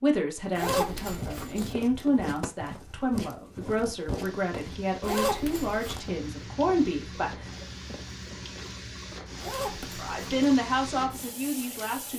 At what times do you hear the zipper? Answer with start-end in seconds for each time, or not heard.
0.6-1.8, 5.0-6.0, 9.4-10.5.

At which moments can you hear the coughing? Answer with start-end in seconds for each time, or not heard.
7.8-8.4.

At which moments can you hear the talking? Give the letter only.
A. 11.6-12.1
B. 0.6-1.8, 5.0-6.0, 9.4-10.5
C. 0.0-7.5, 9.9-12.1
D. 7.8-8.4
C.